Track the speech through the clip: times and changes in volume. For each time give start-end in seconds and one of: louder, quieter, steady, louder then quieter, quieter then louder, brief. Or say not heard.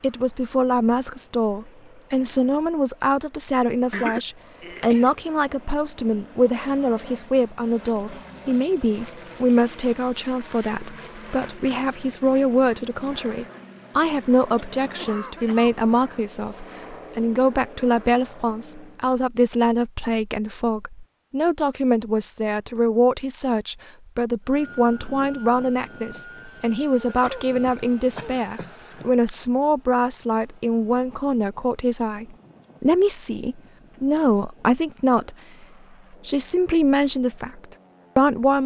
0.0-35.4 steady
36.2-38.6 brief.